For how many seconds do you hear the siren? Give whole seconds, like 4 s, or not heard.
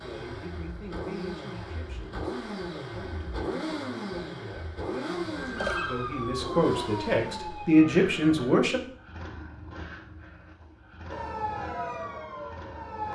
5 s.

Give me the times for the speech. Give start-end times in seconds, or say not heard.
0.0-8.8.